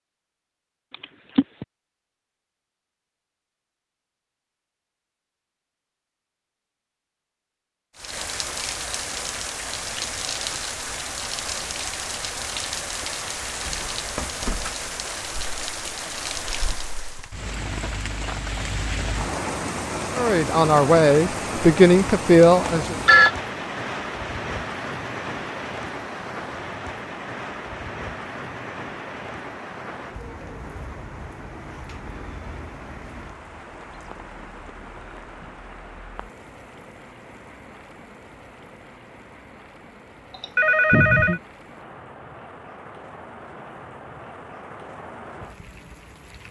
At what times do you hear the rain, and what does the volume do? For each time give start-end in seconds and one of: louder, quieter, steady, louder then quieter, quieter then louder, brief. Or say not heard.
8.0-46.4 quieter.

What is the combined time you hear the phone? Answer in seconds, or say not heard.
2 s.